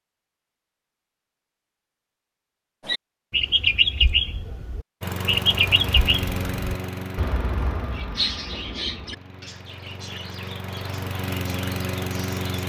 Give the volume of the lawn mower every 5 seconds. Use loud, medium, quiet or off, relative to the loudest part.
off, loud, loud.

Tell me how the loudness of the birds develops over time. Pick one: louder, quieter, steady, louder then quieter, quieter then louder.
quieter.